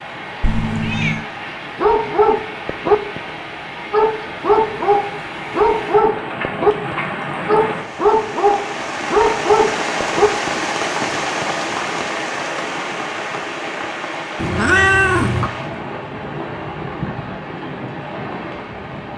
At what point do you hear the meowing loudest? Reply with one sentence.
The volume of the meowing peaks at 15 seconds.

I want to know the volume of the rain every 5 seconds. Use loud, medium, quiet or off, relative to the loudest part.
medium, loud, loud, medium.